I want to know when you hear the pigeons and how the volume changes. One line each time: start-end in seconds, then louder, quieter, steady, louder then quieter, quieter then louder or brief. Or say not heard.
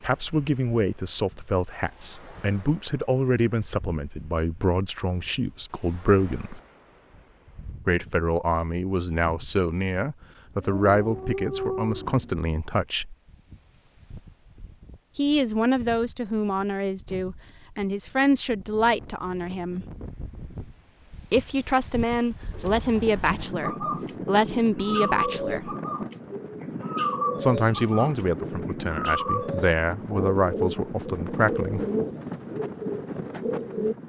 22.5-34.0 steady.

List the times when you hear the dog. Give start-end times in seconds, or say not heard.
10.6-12.4.